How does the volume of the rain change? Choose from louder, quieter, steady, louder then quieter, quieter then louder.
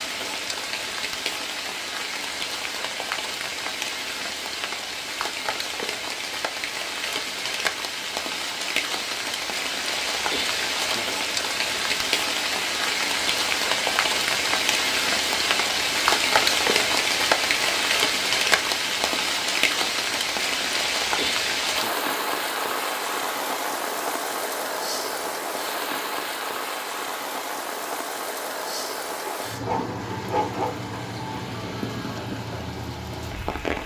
louder then quieter.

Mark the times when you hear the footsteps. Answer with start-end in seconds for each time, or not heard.
not heard.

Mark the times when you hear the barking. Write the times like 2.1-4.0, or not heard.
29.2-30.8.